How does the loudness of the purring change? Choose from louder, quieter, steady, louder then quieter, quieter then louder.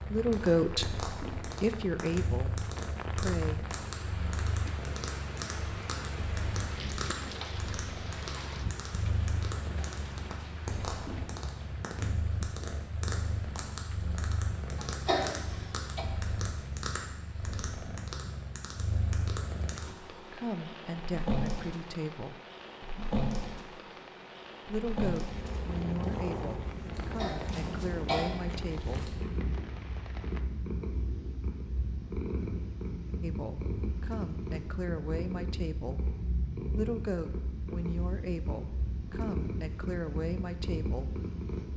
steady.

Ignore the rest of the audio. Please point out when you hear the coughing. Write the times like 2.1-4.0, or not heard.
14.8-16.1, 27.1-28.2.